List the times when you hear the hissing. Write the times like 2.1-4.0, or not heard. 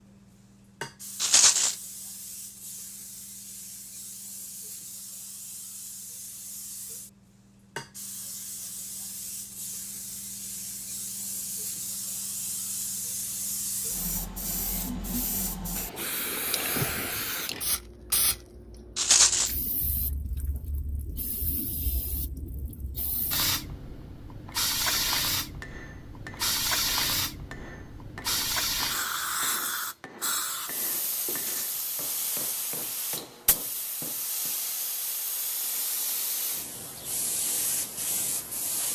0.0-38.8.